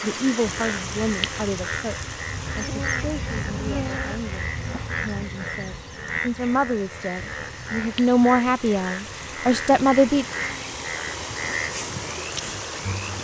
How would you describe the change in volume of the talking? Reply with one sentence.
The volume of the talking goes down, then up.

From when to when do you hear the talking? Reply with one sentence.
You can hear the talking from 0.0 to 10.2 s.